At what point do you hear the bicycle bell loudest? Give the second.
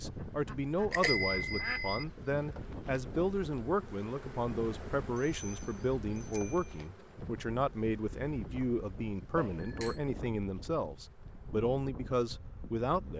1 s.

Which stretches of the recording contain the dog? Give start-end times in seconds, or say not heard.
not heard.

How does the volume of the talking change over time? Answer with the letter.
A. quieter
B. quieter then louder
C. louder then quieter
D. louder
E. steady
E.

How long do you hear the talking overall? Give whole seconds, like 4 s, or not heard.
13 s.